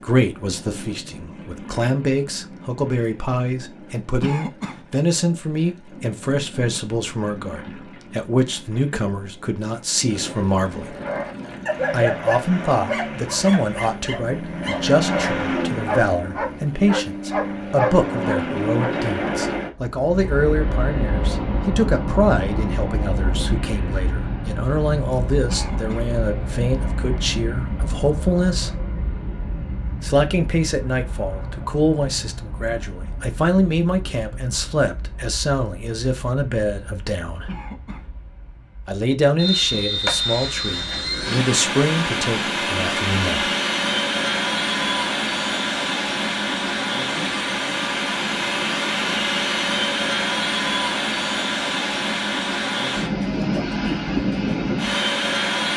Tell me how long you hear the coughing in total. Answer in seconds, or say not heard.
2 s.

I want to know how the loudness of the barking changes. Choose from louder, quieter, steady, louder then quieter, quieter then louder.
quieter then louder.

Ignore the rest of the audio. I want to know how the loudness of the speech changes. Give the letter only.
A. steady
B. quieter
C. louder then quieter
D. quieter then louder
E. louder
A.